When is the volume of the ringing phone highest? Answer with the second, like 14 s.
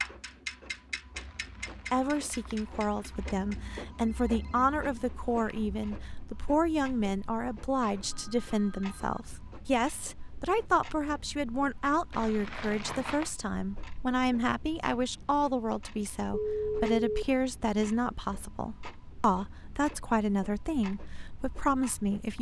17 s.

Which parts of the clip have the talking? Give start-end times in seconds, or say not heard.
1.9-22.3.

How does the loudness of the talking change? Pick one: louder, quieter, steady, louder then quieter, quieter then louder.
steady.